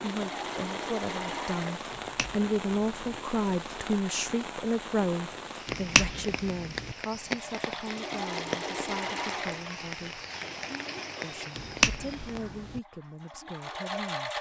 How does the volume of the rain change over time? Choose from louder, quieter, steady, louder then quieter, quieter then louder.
steady.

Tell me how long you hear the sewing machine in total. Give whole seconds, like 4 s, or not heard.
9 s.